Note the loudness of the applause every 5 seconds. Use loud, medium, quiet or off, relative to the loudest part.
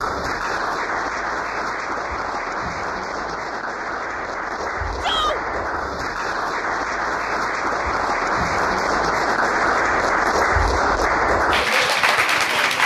medium, loud, loud.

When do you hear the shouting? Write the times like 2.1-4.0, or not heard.
5.0-5.4.